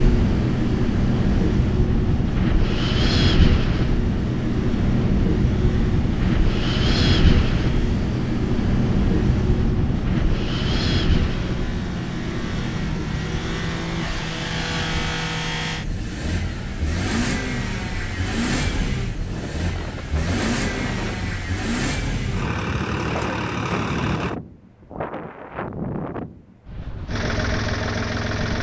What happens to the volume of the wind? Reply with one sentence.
The loudness of the wind goes down.